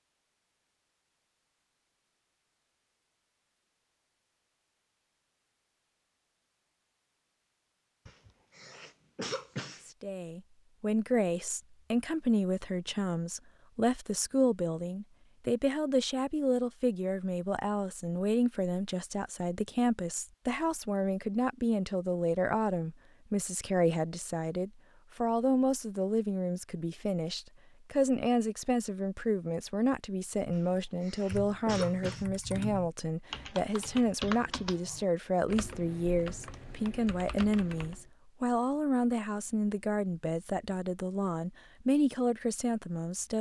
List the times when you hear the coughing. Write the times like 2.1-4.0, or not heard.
8.1-9.8, 30.5-32.2.